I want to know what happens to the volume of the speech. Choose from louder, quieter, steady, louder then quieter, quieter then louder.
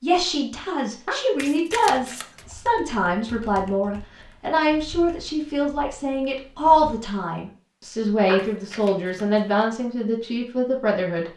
steady.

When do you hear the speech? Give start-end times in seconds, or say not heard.
0.0-11.3.